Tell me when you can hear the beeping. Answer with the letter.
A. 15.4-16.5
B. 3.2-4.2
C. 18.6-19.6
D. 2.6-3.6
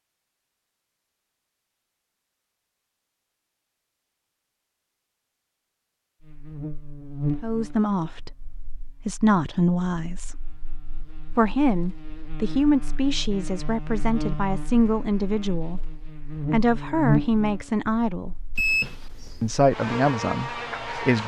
C.